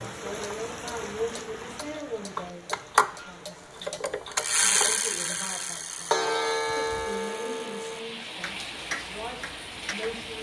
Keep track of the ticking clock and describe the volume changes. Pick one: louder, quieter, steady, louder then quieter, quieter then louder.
louder then quieter.